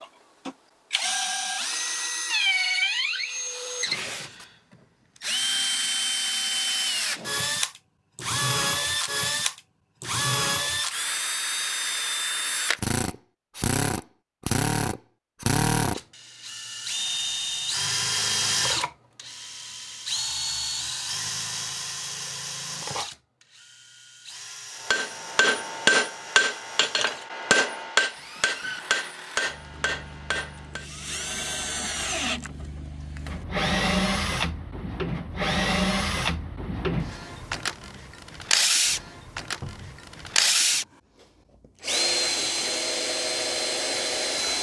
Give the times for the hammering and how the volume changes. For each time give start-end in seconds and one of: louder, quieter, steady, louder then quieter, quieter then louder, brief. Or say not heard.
24.8-30.9 quieter.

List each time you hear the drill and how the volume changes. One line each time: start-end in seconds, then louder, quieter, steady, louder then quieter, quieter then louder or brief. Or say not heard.
0.0-40.9 quieter then louder
41.8-44.5 brief.